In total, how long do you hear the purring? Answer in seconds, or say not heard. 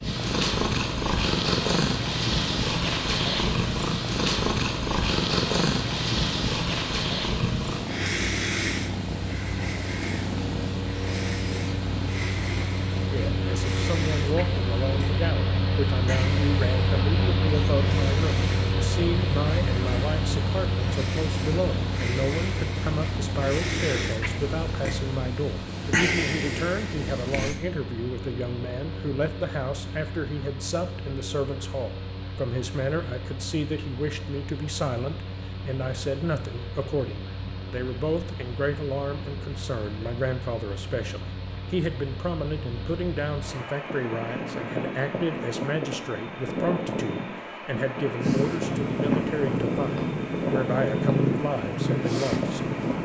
32 s.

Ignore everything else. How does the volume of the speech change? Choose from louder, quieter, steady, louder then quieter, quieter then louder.
steady.